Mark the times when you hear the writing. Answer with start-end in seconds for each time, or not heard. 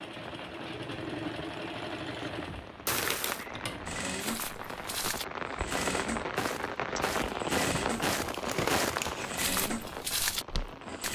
not heard.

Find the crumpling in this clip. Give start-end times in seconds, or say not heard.
2.9-3.5, 8.2-9.4.